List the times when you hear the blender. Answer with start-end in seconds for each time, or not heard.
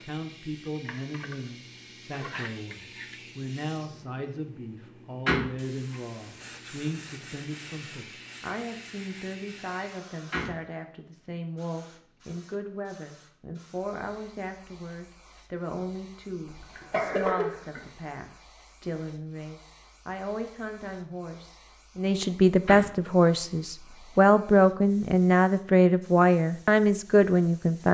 not heard.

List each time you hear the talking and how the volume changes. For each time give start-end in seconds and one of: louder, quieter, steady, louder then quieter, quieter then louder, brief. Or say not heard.
0.0-27.8 louder.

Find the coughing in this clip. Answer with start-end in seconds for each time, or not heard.
16.4-17.8.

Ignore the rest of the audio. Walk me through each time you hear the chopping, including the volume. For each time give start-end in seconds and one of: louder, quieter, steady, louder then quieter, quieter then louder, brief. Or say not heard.
not heard.